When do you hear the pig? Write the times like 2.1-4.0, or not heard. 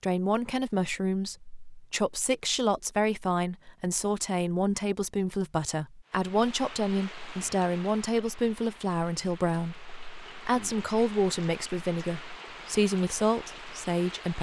not heard.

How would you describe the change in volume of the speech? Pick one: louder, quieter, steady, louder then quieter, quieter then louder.
steady.